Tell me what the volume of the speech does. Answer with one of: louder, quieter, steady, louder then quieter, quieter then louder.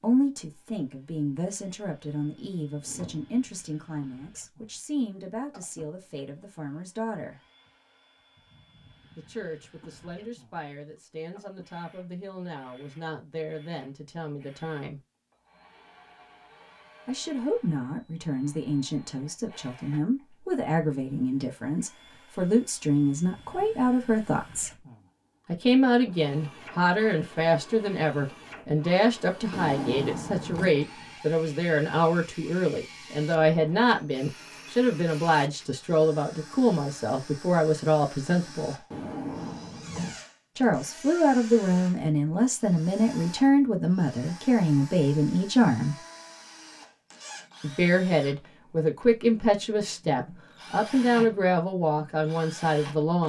louder.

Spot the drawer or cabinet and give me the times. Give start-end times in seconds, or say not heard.
2.8-3.4, 29.5-30.7, 38.9-40.2.